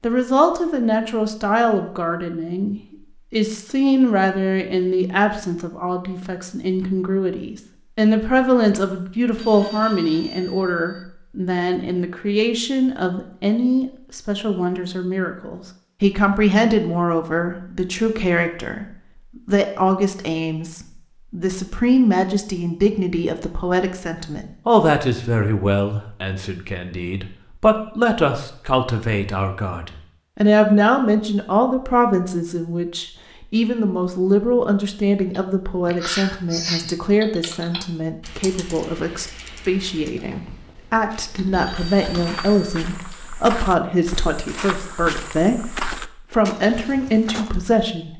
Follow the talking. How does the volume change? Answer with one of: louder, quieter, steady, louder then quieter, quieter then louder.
steady.